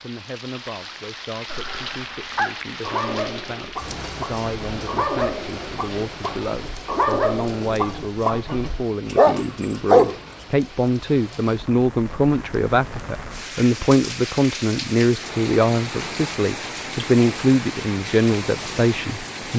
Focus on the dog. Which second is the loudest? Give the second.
10 s.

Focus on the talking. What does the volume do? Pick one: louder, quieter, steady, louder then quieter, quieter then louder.
louder.